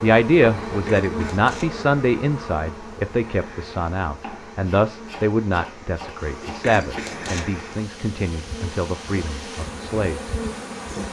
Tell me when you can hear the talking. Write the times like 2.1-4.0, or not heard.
0.0-10.3.